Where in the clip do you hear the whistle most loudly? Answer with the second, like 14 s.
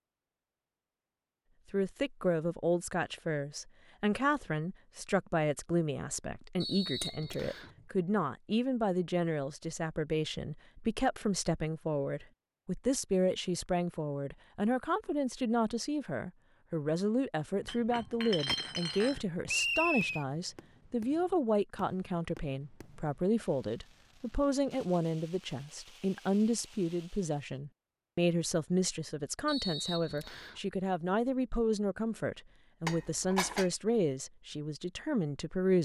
20 s.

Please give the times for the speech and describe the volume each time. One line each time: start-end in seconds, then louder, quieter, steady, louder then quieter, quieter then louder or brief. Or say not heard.
1.7-35.8 steady.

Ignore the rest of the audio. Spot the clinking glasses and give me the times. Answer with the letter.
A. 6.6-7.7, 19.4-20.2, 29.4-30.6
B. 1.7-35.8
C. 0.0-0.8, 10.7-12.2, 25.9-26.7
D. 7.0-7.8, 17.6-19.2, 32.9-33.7
D.